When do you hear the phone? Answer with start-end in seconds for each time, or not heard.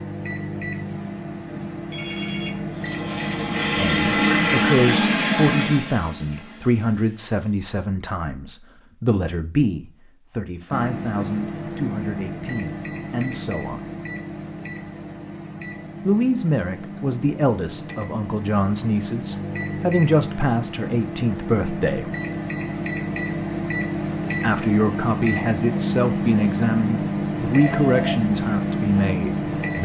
1.9-2.7, 27.6-28.2.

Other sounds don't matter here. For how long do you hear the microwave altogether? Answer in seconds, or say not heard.
24 s.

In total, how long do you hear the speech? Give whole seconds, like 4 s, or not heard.
22 s.